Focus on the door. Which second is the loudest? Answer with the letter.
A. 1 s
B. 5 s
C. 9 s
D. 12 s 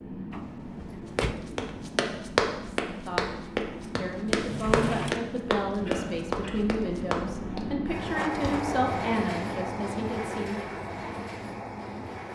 B.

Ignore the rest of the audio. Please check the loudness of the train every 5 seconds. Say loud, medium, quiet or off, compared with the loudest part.
medium, loud, loud.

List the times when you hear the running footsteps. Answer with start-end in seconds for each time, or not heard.
1.1-8.7.